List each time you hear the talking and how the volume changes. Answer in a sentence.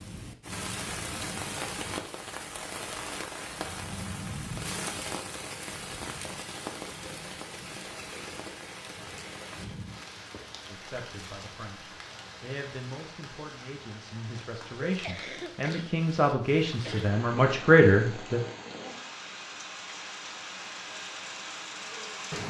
You can hear the talking from 10.7 to 18.4 s, getting louder.